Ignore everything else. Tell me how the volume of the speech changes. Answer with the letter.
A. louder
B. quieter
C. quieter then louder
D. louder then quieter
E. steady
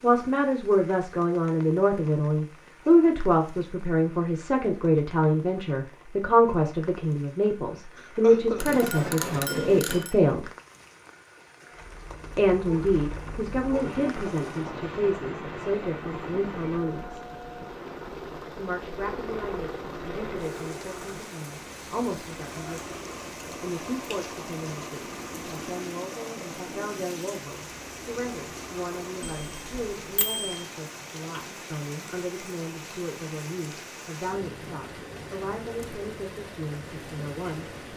B.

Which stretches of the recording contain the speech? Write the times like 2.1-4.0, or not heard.
0.0-10.5, 12.3-17.2, 18.6-37.8.